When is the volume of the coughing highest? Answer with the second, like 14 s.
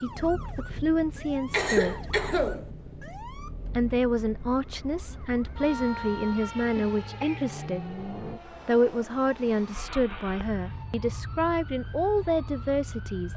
2 s.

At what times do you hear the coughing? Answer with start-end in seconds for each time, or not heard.
1.5-2.7, 7.0-7.7.